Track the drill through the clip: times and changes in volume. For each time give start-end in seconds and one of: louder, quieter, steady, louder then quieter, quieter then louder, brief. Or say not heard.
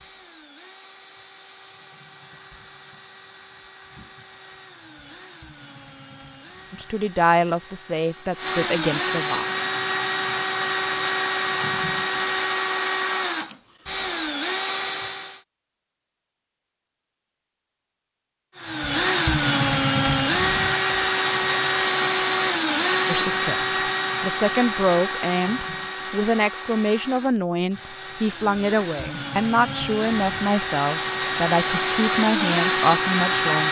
0.0-15.4 louder
18.6-33.6 quieter then louder.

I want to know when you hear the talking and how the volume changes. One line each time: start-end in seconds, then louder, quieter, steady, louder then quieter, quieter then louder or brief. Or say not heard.
6.7-9.4 brief
23.1-33.6 steady.